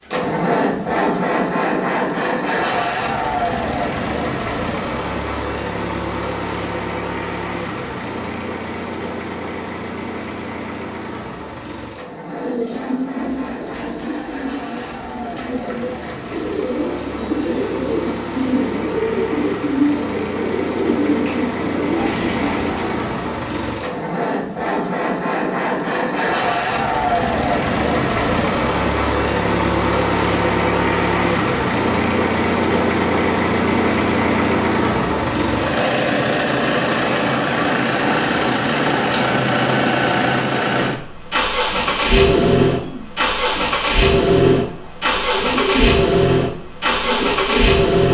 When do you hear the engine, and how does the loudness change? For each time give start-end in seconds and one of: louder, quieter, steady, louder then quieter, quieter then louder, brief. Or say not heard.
0.0-48.0 quieter then louder.